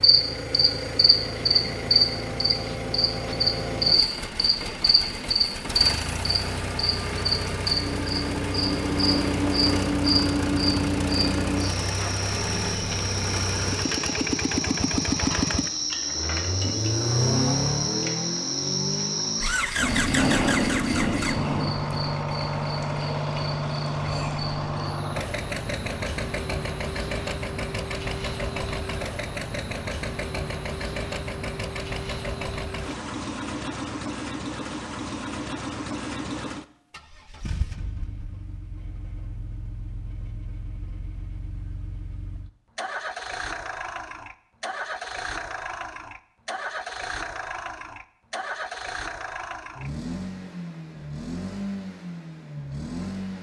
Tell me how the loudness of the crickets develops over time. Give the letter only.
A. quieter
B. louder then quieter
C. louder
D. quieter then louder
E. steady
A.